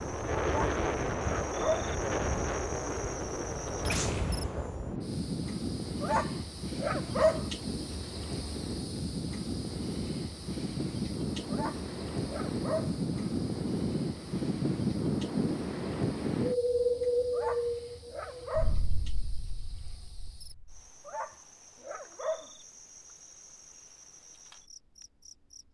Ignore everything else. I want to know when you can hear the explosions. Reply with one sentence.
You can hear the explosions from 3.9 to 5.0 s and from 18.6 to 20.8 s.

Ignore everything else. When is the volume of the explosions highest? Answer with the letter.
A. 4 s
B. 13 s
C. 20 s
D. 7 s
A.